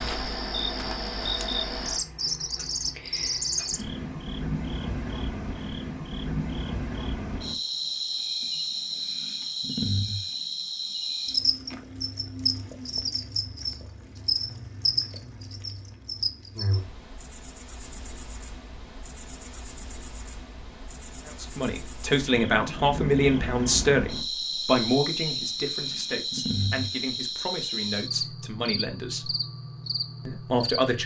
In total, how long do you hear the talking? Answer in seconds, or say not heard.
9 s.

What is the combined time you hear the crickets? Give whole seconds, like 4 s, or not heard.
31 s.